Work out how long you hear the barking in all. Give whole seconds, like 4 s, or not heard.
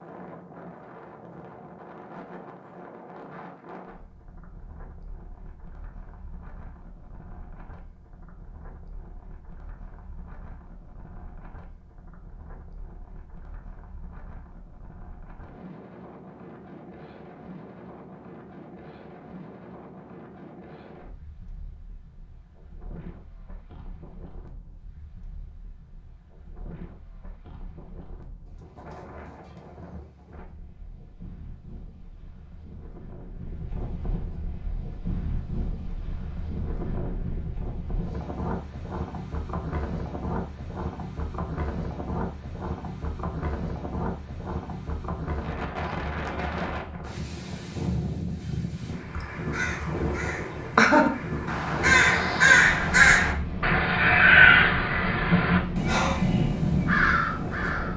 not heard.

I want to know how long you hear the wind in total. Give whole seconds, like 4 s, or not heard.
58 s.